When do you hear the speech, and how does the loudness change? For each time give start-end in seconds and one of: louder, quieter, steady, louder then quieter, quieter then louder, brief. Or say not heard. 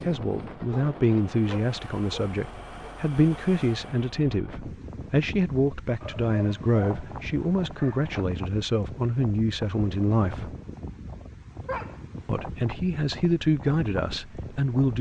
0.1-10.6 steady
12.2-14.9 brief.